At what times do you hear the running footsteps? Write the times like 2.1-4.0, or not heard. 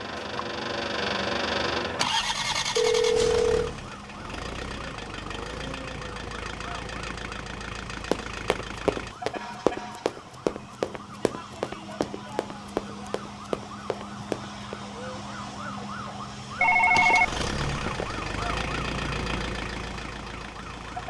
8.1-14.8.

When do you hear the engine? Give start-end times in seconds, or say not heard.
0.0-9.2, 16.6-21.0.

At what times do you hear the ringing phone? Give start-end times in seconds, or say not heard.
2.8-3.7, 16.6-18.1.